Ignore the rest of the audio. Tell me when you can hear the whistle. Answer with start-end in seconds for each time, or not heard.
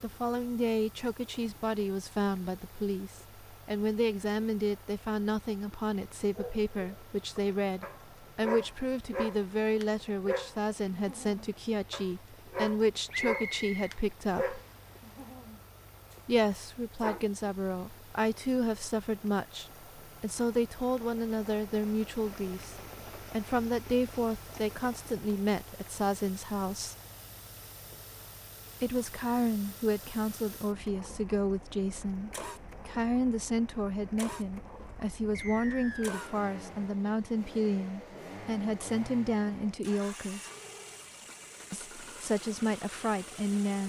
13.1-14.6, 35.3-36.2.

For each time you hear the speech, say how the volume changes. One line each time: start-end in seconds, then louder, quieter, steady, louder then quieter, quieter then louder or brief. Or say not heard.
0.0-14.6 steady
16.2-26.9 steady
28.8-40.5 steady
41.7-43.8 brief.